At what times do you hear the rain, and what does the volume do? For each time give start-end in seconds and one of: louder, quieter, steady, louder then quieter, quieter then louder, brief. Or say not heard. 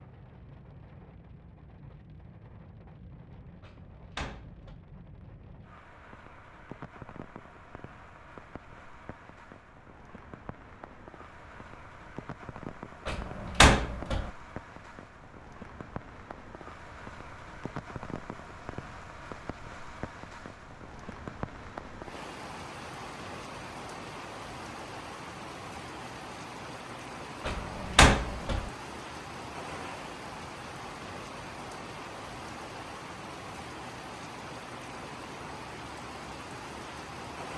0.0-37.5 louder.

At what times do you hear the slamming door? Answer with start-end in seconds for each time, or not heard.
3.6-4.8, 13.1-14.3, 27.4-28.7.